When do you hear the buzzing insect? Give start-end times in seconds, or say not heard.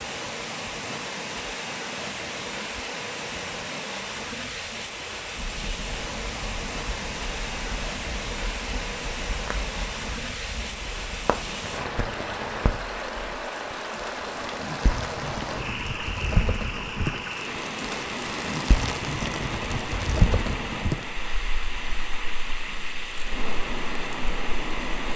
not heard.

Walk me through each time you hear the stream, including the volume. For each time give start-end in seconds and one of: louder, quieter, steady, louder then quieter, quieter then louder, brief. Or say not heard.
0.0-25.1 steady.